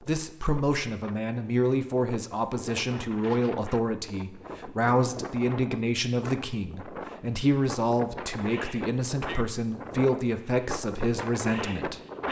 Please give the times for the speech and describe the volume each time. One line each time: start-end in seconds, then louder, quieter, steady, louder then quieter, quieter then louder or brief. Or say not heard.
0.1-12.0 steady.